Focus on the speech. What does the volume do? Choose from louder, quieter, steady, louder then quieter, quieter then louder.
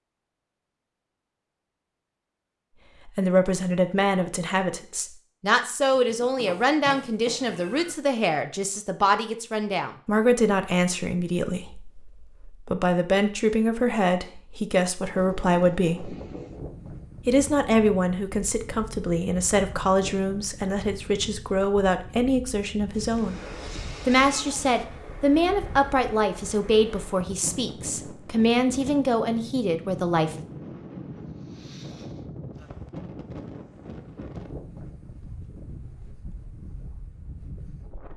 steady.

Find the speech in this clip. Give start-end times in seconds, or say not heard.
3.0-16.1, 17.2-23.4, 24.1-30.4.